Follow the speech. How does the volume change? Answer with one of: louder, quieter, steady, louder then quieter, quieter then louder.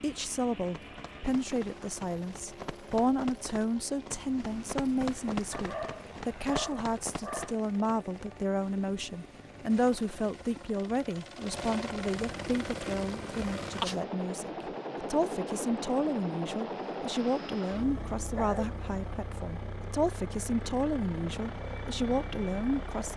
steady.